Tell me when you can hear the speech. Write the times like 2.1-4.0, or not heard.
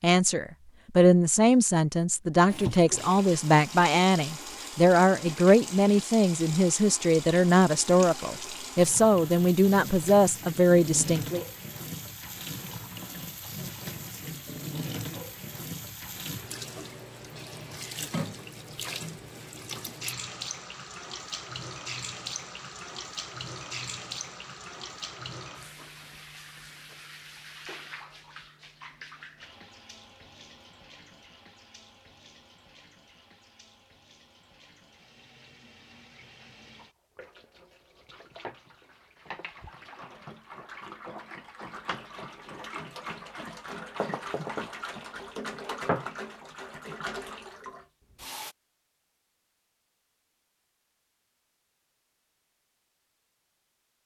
0.0-11.4.